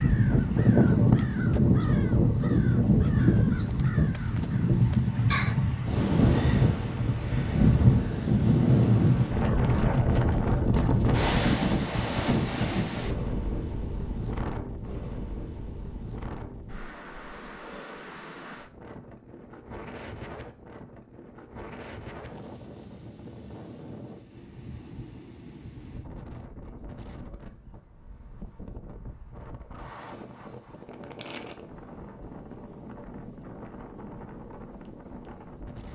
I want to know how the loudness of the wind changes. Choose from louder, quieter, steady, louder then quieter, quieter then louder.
quieter.